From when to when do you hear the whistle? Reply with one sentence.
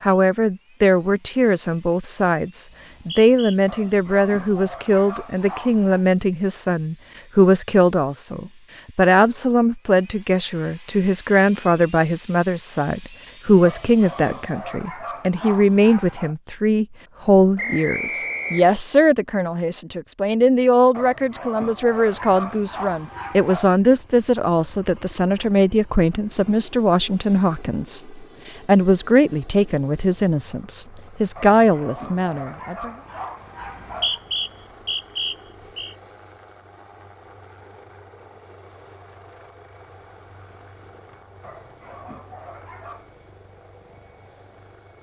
The whistle can be heard from 2.7 to 3.5 s, from 17.6 to 18.8 s and from 33.6 to 36.0 s.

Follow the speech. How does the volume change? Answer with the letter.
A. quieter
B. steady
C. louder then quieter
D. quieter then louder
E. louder
B.